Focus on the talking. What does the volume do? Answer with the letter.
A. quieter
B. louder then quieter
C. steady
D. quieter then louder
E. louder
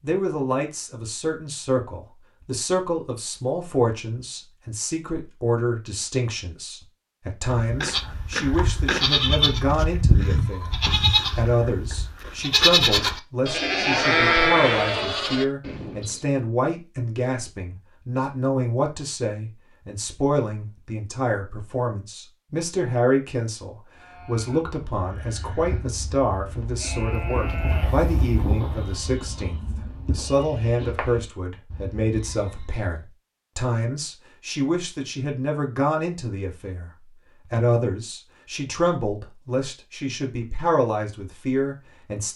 C.